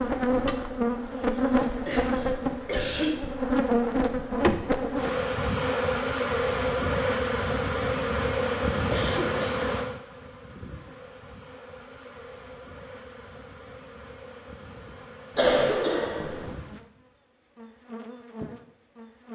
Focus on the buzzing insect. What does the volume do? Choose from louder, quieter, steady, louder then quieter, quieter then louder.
quieter.